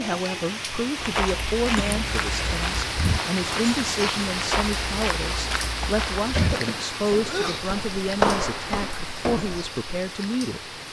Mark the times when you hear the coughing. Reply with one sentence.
The coughing can be heard from 1.8 to 3.0 s and from 6.3 to 7.7 s.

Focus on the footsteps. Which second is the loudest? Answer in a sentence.
The volume of the footsteps peaks at 8 seconds.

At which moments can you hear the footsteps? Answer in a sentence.
The footsteps can be heard from 1.0 to 9.7 s.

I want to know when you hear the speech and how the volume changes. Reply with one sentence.
The speech can be heard from 0.0 to 10.8 s, at a steady volume.